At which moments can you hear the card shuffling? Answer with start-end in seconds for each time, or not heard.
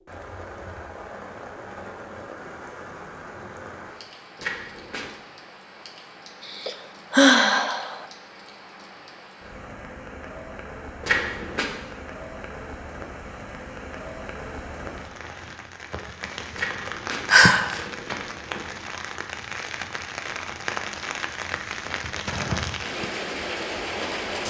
4.3-5.1, 11.0-11.7, 16.6-18.9.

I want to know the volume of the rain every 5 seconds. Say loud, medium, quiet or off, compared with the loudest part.
medium, quiet, medium, medium, loud.